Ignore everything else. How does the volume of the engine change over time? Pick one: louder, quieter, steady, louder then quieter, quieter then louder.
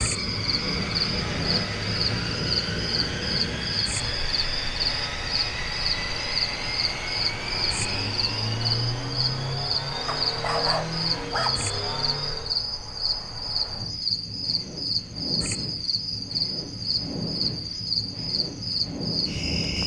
steady.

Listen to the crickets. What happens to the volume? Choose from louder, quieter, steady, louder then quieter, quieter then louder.
steady.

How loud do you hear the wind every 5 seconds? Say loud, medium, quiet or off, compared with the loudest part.
loud, medium, medium, loud.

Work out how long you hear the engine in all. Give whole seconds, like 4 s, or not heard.
13 s.